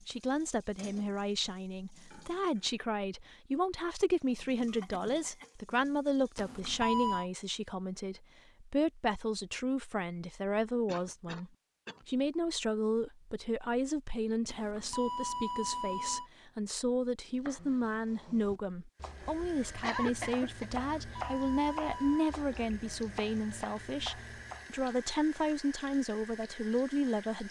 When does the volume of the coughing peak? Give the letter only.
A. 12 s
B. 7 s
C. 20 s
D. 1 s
C.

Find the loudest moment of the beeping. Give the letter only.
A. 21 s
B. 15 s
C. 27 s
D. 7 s
D.